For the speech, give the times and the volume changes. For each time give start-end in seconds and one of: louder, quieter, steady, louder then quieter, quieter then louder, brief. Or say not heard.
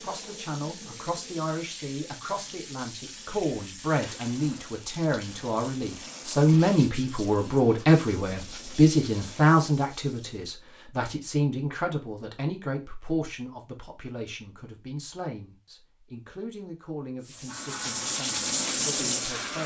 0.0-19.6 louder then quieter.